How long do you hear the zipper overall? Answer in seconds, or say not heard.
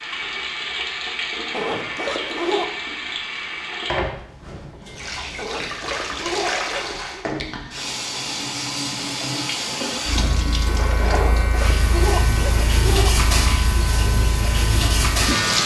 5 s.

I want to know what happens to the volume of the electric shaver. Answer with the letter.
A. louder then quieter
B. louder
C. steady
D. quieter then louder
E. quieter
C.